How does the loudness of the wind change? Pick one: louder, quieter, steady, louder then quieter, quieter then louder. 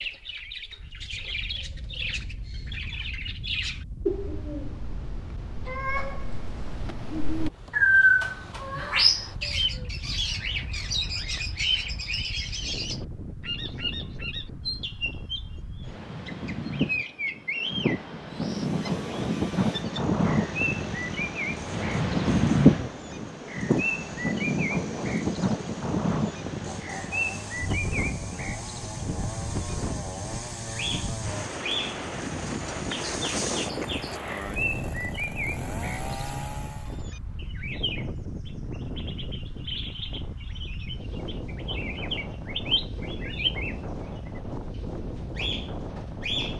louder then quieter.